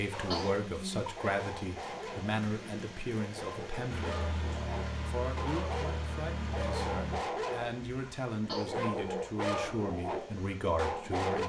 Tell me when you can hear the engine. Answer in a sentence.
You can hear the engine from 3.9 to 7.2 s.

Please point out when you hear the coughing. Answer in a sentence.
You can hear the coughing from 0.3 to 1.1 s and from 8.4 to 9.3 s.